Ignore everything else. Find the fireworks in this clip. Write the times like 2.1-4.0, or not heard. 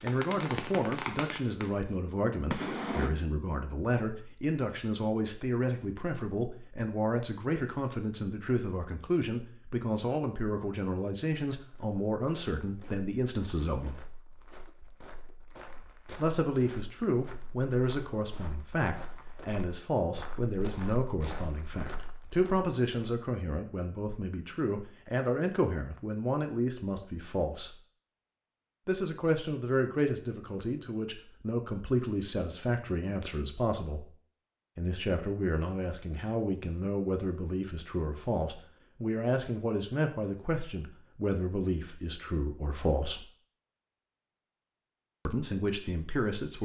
0.0-3.1.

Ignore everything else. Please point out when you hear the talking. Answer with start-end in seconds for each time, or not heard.
0.0-14.0, 16.1-27.8, 28.9-34.1, 34.8-43.2, 45.2-46.6.